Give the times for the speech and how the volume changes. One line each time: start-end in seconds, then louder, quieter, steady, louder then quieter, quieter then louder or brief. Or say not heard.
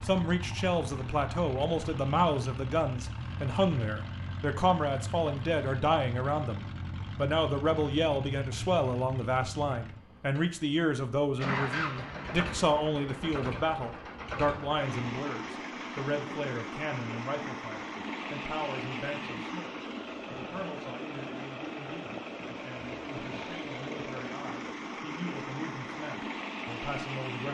0.0-27.5 quieter.